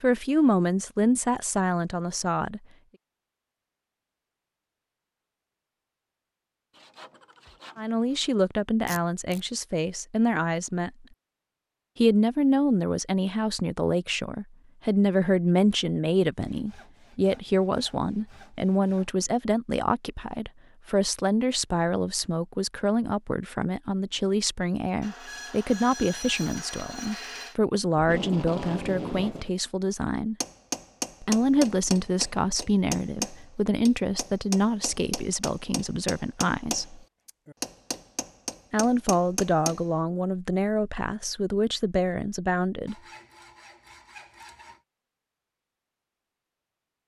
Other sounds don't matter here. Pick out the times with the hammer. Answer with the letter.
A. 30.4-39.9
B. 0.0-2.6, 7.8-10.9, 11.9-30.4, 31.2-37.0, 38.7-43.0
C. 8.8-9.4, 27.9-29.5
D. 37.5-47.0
A.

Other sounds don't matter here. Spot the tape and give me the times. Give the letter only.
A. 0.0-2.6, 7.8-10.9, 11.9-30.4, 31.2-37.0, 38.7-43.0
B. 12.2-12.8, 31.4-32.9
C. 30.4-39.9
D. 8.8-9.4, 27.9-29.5
D.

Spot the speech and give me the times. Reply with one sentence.
The speech can be heard from 0.0 to 2.6 s, from 7.8 to 10.9 s, from 11.9 to 30.4 s, from 31.2 to 37.0 s and from 38.7 to 43.0 s.